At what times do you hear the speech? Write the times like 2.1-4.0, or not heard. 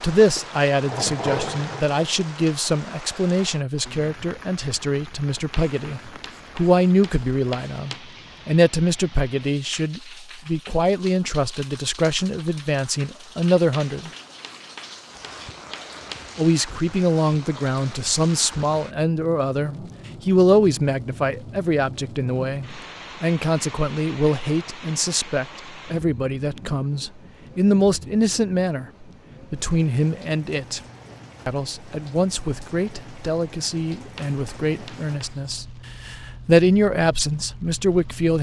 0.0-14.1, 16.4-30.8, 31.4-38.3.